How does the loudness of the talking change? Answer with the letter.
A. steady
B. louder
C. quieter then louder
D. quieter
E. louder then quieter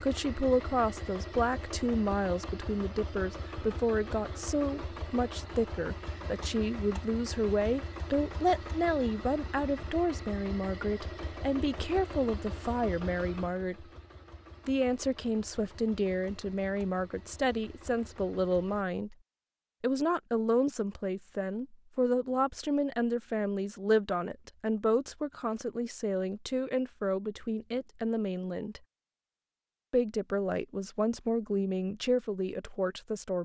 A.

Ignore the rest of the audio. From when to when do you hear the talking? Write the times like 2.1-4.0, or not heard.
0.0-13.8, 14.7-19.1, 19.8-28.8, 29.9-33.3.